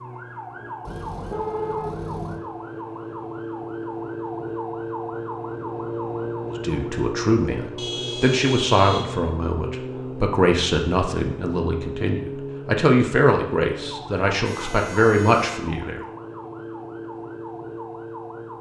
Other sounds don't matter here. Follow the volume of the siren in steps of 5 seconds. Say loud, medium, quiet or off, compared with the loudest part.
loud, loud, loud, medium.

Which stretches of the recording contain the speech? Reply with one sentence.
You can hear the speech from 6.6 to 16.0 s.